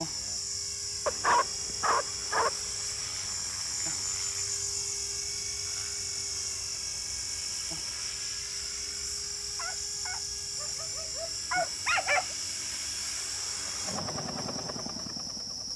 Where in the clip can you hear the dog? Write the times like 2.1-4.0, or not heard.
1.1-2.5, 9.6-12.3.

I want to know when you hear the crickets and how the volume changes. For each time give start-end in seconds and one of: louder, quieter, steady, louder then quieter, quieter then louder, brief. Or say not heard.
0.0-15.7 steady.